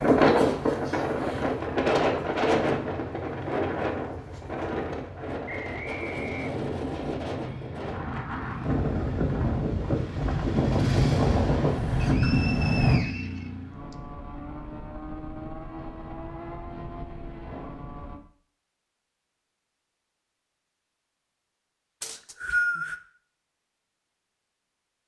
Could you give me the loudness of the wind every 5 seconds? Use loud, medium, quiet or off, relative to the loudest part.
loud, medium, loud, off, off.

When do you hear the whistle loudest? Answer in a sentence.
The loudest moment of the whistle is at 23 seconds.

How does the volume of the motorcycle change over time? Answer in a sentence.
The loudness of the motorcycle goes up, then down.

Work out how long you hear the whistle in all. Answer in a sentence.
The whistle can be heard for 4 seconds in total.